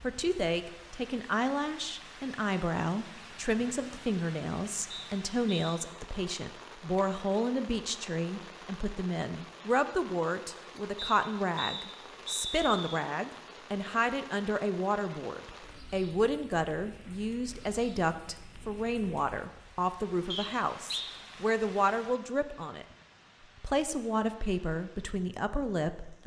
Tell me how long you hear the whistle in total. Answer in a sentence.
The whistle can be heard for 4 seconds in total.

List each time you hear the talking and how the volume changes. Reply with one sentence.
The talking can be heard from 0.0 to 22.9 s, at a steady volume; and briefly from 23.6 to 26.2 s.